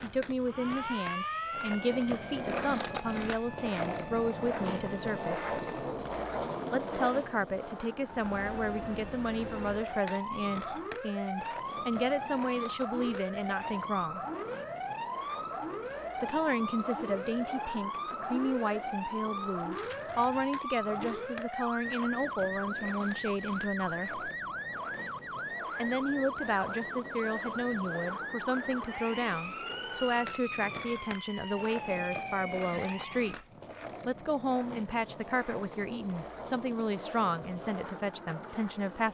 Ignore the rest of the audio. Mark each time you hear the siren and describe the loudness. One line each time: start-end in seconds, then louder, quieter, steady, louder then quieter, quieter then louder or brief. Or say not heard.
0.1-5.8 quieter
8.1-33.5 steady.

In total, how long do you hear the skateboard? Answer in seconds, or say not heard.
39 s.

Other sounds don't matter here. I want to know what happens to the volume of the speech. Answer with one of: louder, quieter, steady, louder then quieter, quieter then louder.
steady.